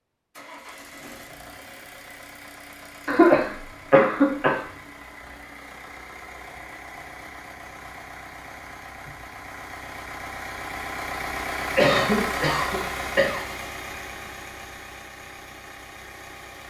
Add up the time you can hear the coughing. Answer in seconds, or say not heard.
3 s.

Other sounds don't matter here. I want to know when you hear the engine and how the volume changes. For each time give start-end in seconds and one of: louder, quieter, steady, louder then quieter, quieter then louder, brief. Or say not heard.
0.3-16.6 louder then quieter.